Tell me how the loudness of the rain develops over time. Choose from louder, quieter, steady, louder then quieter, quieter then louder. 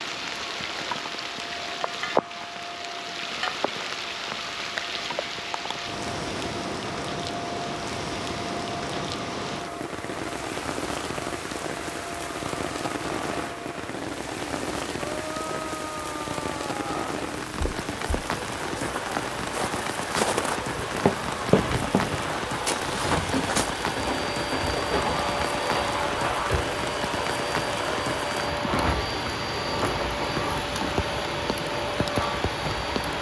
steady.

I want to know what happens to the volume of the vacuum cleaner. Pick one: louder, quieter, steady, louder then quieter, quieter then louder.
louder.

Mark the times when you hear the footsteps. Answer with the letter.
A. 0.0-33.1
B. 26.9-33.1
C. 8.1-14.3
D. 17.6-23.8
D.